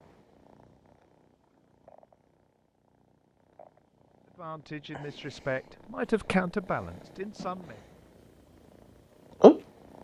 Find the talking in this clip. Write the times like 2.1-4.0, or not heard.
4.3-7.8.